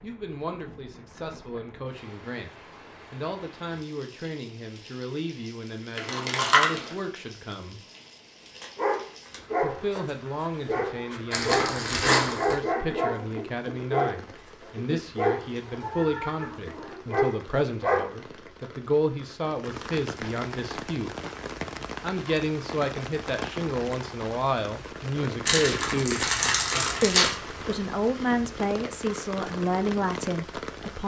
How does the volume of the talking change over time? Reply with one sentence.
The loudness of the talking goes up.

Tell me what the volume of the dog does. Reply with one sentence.
The loudness of the dog stays about the same.